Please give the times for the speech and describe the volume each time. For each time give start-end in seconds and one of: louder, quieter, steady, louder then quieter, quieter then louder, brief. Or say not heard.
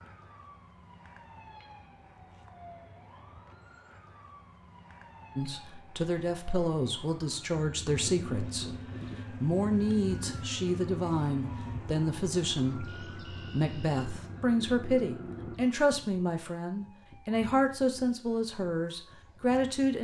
5.3-19.9 steady.